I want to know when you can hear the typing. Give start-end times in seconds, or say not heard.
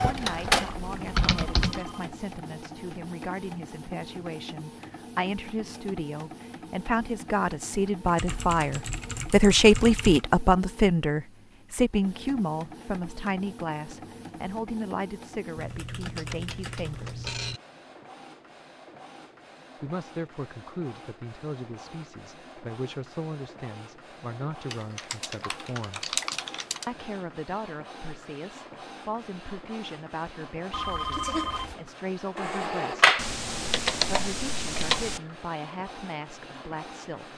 0.0-1.8, 8.0-10.2, 15.6-17.6, 24.7-26.9, 33.1-35.2.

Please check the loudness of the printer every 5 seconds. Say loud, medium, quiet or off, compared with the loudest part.
loud, quiet, quiet, quiet, quiet, quiet, loud, quiet.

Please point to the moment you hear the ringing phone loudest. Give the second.
31 s.